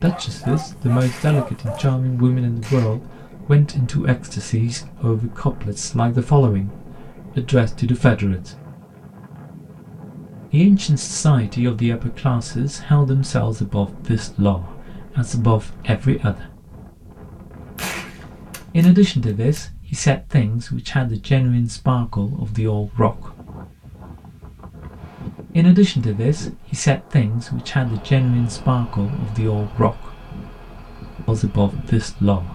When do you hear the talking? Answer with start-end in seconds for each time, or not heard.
0.0-6.8, 7.3-8.5, 10.5-16.4, 18.7-23.3, 25.6-30.1, 31.2-32.4.